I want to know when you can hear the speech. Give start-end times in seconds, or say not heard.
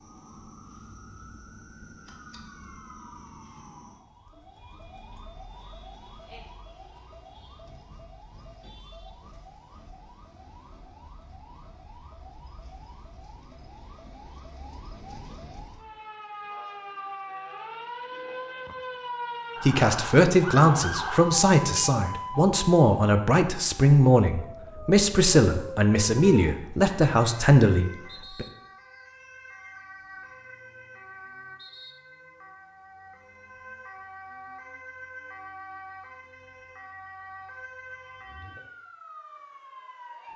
19.6-28.4.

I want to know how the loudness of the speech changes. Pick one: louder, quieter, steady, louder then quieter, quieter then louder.
steady.